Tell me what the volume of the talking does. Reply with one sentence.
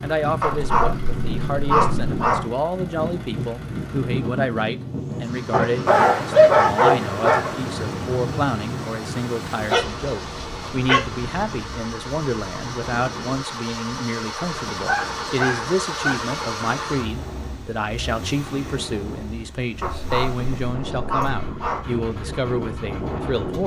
The loudness of the talking stays about the same.